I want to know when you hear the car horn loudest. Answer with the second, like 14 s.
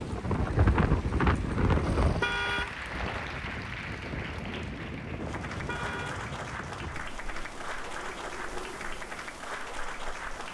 2 s.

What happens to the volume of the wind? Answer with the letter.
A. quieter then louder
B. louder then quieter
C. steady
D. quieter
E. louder
D.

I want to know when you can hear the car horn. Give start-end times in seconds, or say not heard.
1.8-2.8, 5.5-6.2.